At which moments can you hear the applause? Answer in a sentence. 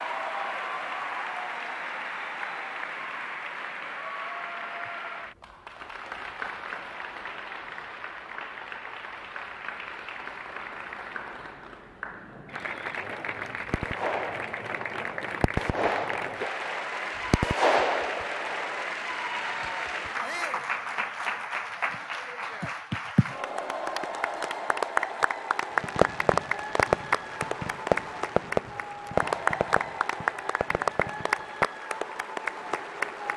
The applause can be heard from 0.0 to 33.3 s.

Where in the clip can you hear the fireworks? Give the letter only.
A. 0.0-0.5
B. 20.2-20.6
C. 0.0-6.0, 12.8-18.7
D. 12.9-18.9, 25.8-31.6
D.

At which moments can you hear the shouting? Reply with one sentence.
The shouting can be heard from 20.2 to 20.6 s.